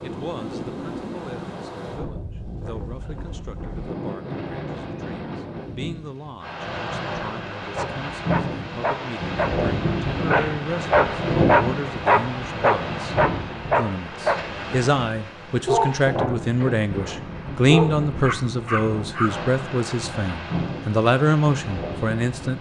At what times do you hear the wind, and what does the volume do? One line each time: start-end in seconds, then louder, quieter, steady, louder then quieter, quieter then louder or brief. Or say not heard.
0.0-22.5 louder then quieter.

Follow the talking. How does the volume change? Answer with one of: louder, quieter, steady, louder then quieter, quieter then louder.
louder.